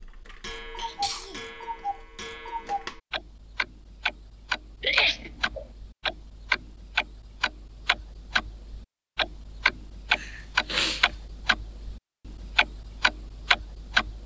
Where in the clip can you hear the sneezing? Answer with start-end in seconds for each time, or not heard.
0.8-1.4, 4.8-5.7, 10.1-11.1.